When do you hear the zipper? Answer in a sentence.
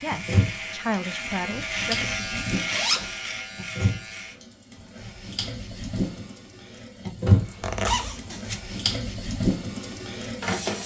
The zipper can be heard from 2.7 to 3.1 s and from 7.6 to 8.6 s.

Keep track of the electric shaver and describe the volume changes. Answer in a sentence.
The loudness of the electric shaver goes up, then down.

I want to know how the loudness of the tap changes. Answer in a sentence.
The loudness of the tap goes up.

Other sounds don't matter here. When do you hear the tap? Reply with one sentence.
The tap can be heard from 0.1 to 10.8 s.